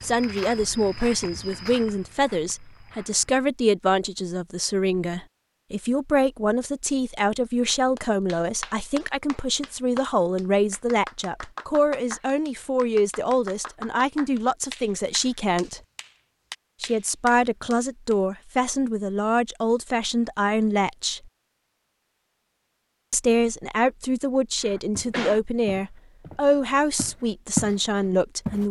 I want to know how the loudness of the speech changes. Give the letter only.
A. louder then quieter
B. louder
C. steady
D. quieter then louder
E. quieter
C.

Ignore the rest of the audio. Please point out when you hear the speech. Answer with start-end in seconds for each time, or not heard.
0.0-15.8, 16.8-21.2, 23.1-28.6.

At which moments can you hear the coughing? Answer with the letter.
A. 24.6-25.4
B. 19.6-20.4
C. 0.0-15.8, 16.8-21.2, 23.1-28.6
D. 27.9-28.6
A.